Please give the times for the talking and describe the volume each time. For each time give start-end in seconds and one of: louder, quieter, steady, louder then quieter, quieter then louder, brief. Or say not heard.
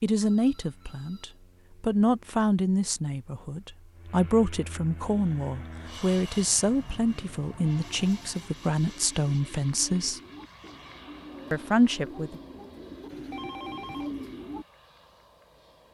0.0-10.2 steady
11.5-12.4 brief.